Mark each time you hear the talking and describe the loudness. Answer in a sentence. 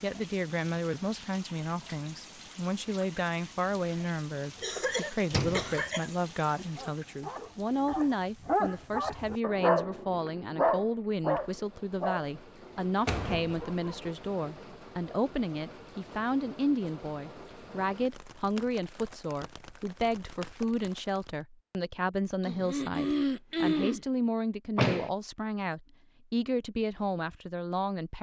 You can hear the talking from 0.0 to 28.1 s, at a steady volume.